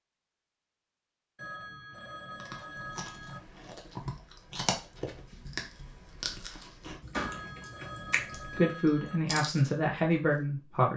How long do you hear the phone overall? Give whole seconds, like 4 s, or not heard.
4 s.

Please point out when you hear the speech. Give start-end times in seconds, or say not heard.
8.4-10.9.